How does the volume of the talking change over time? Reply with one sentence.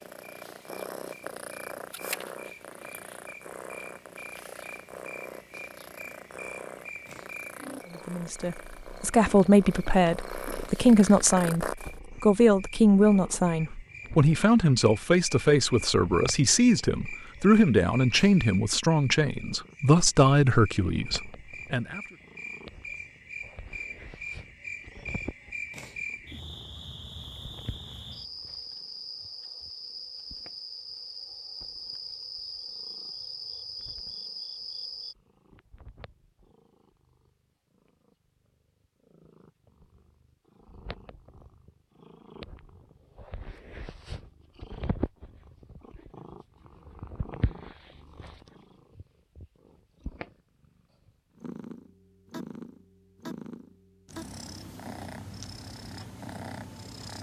The loudness of the talking stays about the same.